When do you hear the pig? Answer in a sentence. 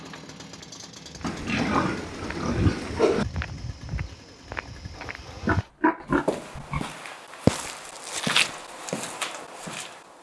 The pig can be heard from 1.2 to 3.2 s and from 5.4 to 6.8 s.